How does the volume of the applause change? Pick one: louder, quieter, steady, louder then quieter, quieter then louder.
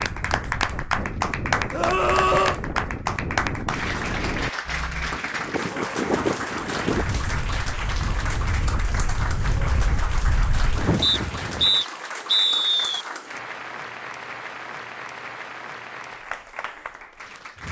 quieter.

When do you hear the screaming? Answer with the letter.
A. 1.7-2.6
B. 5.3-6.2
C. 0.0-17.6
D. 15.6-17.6
A.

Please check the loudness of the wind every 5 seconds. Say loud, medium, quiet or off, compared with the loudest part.
loud, loud, loud, off.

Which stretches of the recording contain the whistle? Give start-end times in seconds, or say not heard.
11.0-13.1.